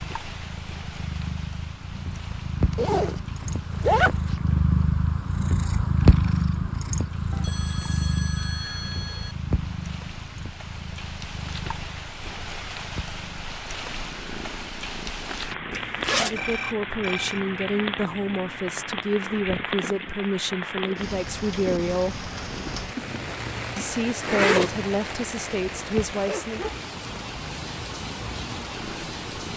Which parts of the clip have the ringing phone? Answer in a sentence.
The ringing phone can be heard from 7.3 to 9.3 s and from 16.4 to 17.4 s.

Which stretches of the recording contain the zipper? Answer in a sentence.
You can hear the zipper from 2.7 to 3.2 s, from 3.8 to 4.3 s, from 15.7 to 16.6 s and from 22.9 to 24.8 s.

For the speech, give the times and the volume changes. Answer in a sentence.
You can hear the speech from 16.1 to 22.2 s, at a steady volume; and briefly from 23.8 to 26.6 s.